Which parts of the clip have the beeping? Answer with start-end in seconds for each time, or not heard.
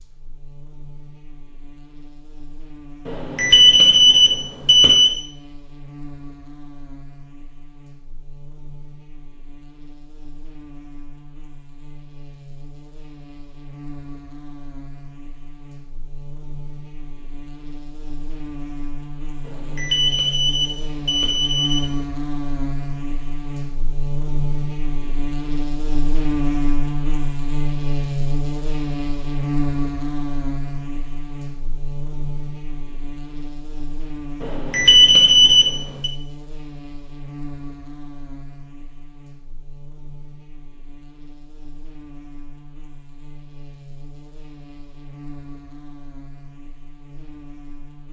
3.0-5.2, 19.4-21.9, 34.4-36.1.